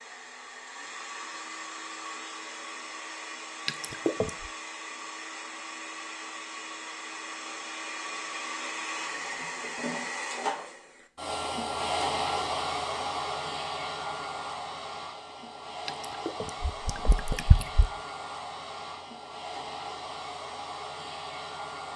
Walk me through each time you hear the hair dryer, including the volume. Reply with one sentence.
You can hear the hair dryer from 0.0 to 21.9 s, getting louder then quieter.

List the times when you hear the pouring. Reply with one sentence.
The pouring can be heard from 3.6 to 4.5 s and from 15.8 to 17.9 s.